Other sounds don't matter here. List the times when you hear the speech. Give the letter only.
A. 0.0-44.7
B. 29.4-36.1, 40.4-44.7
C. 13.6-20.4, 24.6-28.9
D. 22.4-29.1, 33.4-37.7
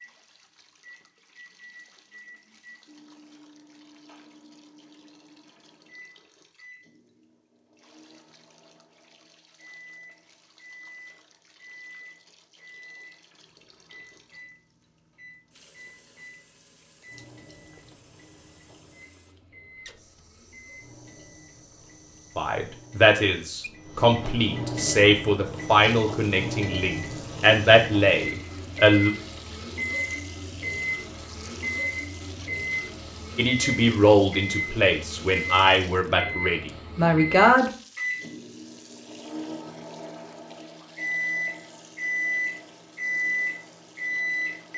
D.